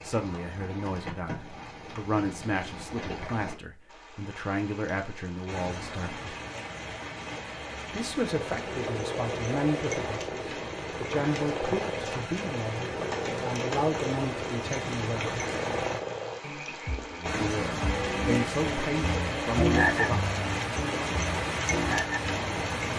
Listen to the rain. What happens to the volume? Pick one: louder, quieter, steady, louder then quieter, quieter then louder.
louder.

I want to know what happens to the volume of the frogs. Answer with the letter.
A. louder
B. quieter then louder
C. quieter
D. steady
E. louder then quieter
A.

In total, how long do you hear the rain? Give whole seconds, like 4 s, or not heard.
23 s.